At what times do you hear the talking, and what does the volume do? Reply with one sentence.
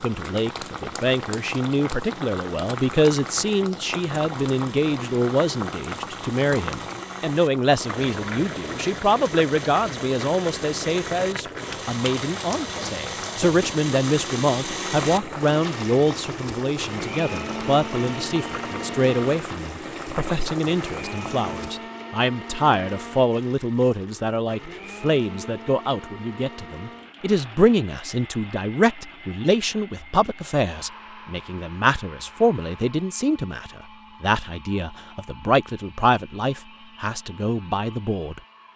You can hear the talking from 0.0 to 38.4 s, at a steady volume.